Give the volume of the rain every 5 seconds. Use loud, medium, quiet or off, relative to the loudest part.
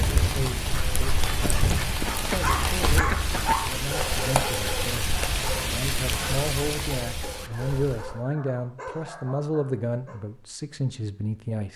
loud, loud, off.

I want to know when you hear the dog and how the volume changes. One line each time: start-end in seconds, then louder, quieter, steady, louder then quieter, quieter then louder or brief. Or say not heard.
2.0-10.2 quieter.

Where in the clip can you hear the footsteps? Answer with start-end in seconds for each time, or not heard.
not heard.